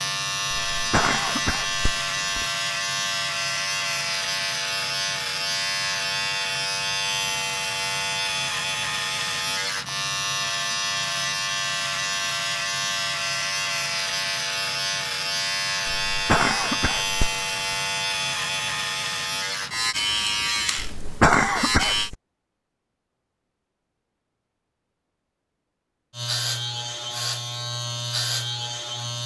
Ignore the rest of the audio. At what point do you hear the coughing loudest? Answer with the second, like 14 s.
21 s.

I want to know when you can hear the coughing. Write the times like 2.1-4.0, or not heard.
0.5-2.5, 15.8-17.4, 20.8-22.1.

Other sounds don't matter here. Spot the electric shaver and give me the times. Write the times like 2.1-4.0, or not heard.
0.0-22.1, 26.1-29.2.